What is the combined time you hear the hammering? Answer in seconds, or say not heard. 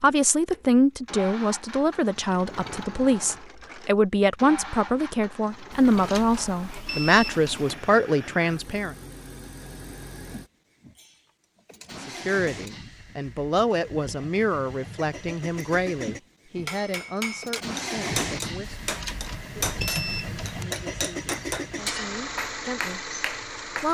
7 s.